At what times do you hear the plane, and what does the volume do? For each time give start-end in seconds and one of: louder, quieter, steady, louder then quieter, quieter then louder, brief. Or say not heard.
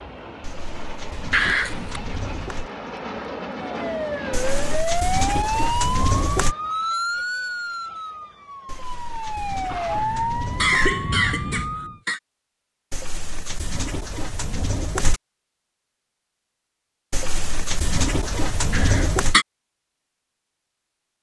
0.0-4.8 louder.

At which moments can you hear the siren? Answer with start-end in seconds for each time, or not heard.
3.5-12.0.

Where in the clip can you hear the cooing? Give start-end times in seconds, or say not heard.
0.4-2.7, 4.3-6.5, 8.7-10.9, 12.9-15.2, 17.1-19.4.